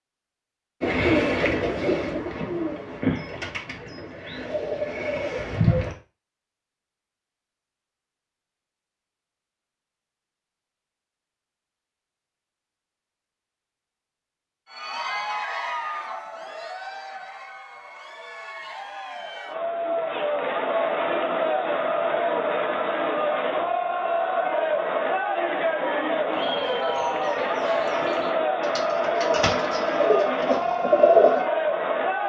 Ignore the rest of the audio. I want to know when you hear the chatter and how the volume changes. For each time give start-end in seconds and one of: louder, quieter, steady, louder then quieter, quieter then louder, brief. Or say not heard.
14.7-32.2 louder.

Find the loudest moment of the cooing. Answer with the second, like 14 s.
31 s.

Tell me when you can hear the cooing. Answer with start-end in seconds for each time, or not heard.
0.8-6.0, 26.3-31.4.